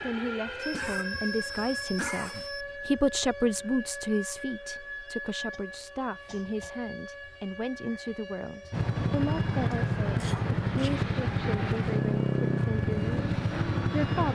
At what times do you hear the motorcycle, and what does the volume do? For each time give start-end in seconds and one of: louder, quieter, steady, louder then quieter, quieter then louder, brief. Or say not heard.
8.7-14.3 steady.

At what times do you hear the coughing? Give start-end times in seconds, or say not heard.
0.6-2.6, 5.5-6.7, 9.7-11.0.